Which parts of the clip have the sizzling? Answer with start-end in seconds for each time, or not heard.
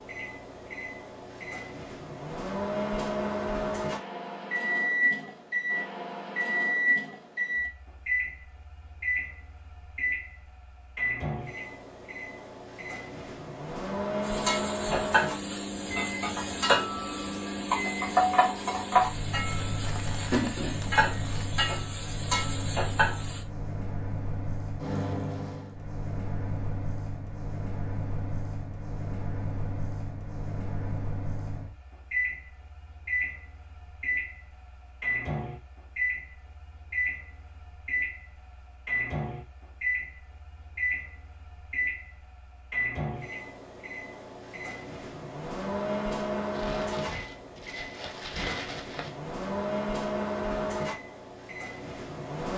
14.2-23.4.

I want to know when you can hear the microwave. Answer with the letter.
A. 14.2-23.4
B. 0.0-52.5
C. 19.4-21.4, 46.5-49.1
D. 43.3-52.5
B.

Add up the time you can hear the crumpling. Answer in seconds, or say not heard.
5 s.